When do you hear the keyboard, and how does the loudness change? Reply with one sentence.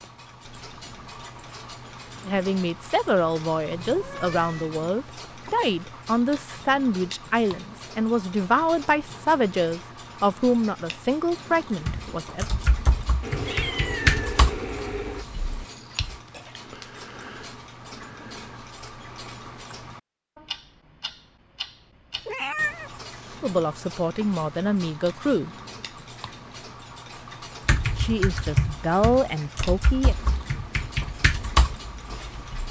You can hear the keyboard from 11.8 to 16.1 s, getting louder then quieter; and from 27.6 to 32.6 s, getting quieter then louder.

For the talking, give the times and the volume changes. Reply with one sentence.
The talking can be heard from 2.2 to 12.4 s, at a steady volume; briefly from 23.4 to 25.5 s; and briefly from 27.9 to 30.1 s.